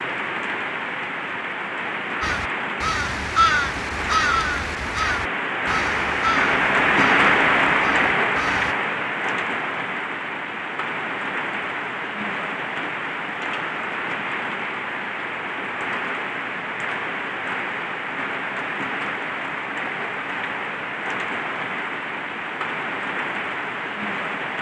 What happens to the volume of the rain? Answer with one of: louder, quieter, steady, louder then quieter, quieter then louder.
louder then quieter.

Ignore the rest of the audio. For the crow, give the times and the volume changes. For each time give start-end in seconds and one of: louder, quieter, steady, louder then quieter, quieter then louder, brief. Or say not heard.
2.2-8.8 quieter.